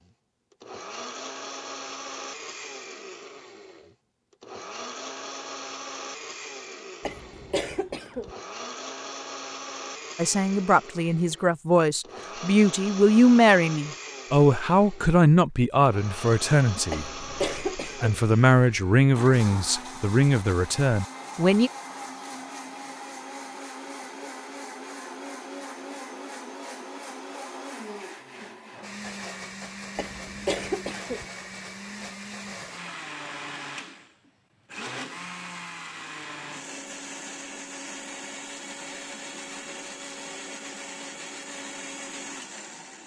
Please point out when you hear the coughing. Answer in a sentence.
You can hear the coughing from 7.0 to 8.3 s, from 16.9 to 18.2 s and from 29.9 to 31.2 s.